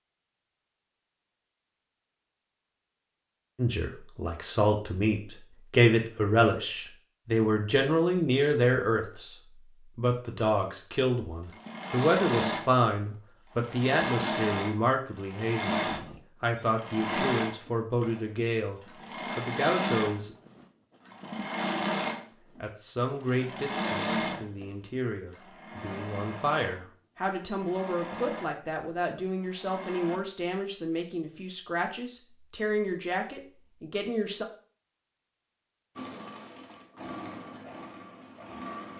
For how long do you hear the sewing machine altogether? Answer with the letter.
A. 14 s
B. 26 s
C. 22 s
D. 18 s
C.